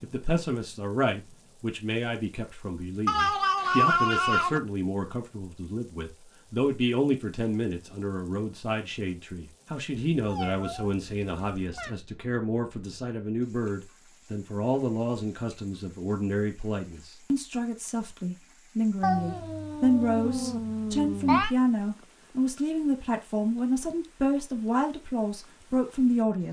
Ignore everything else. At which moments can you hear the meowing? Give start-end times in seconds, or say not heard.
3.0-4.6, 10.2-11.9, 19.0-21.5.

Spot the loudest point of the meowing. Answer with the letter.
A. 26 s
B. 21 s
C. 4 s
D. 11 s
C.